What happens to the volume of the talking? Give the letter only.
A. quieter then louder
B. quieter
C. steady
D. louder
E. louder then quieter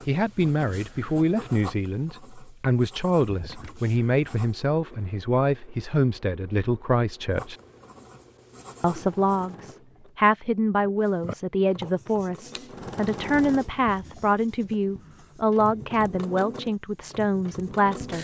C.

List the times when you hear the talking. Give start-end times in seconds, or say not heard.
0.1-7.5, 8.8-18.1.